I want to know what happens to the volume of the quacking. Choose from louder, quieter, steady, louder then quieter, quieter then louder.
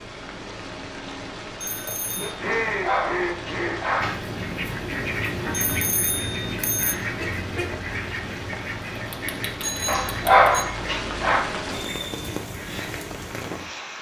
quieter.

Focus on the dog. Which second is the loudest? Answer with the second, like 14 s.
10 s.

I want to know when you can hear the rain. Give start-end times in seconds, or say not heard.
0.0-13.9.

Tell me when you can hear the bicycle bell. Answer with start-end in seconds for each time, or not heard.
1.6-2.4, 5.5-7.0, 9.6-10.7.